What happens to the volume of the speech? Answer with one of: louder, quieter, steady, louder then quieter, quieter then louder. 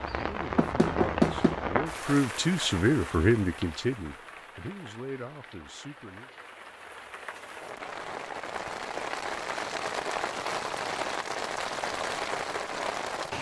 louder then quieter.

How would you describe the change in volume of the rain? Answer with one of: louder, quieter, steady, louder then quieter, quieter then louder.
quieter then louder.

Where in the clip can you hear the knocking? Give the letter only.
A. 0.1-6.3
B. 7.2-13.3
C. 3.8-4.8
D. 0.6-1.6
D.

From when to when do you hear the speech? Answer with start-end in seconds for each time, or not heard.
0.1-6.3.